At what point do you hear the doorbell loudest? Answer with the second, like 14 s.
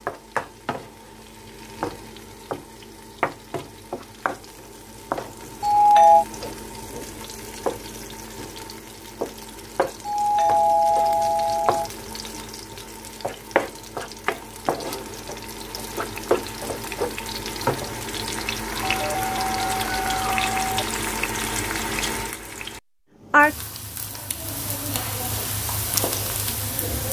6 s.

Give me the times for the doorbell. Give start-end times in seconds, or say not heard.
5.6-6.2, 10.1-11.9, 18.8-20.9.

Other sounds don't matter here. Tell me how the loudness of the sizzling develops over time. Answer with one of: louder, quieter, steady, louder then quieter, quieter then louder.
louder.